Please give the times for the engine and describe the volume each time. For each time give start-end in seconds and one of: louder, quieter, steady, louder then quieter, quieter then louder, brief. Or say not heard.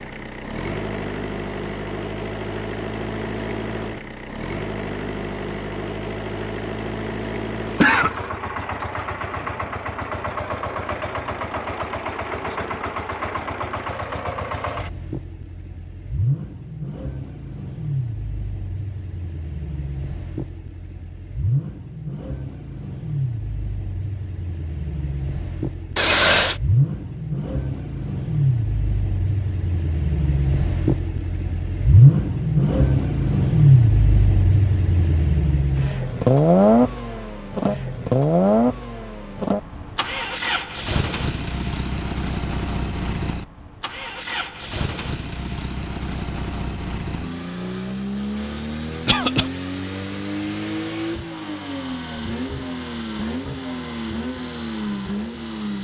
0.0-55.8 louder then quieter.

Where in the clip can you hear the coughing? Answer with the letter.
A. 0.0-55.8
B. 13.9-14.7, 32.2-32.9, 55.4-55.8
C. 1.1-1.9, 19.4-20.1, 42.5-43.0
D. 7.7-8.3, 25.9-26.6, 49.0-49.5
D.